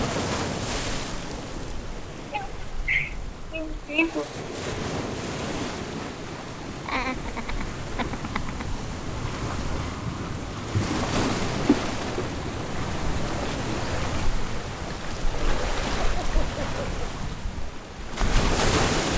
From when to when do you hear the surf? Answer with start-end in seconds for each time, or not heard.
0.0-19.1.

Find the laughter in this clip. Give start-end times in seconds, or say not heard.
2.3-4.2, 6.8-8.7, 15.9-16.9.